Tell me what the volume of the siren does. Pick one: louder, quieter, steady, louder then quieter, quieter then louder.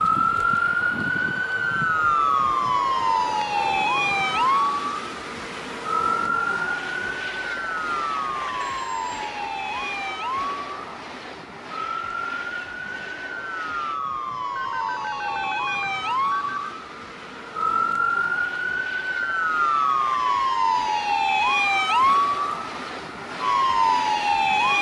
quieter then louder.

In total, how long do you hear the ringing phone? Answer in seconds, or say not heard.
3 s.